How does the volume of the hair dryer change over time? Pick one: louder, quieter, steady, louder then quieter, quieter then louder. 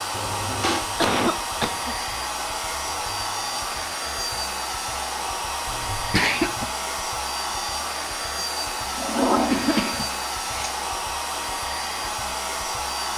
steady.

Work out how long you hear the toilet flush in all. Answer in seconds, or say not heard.
2 s.